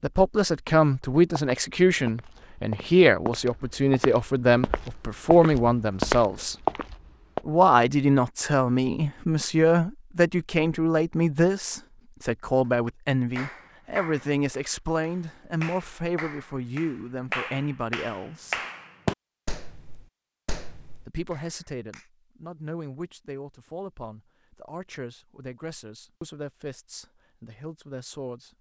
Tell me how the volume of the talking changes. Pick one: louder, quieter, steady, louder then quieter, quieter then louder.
quieter.